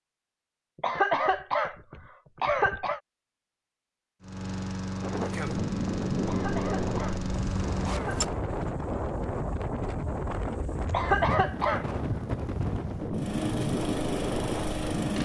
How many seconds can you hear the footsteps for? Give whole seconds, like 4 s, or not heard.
not heard.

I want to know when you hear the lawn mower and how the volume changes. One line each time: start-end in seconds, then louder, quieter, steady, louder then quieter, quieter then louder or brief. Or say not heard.
4.2-8.3 steady
13.1-15.2 brief.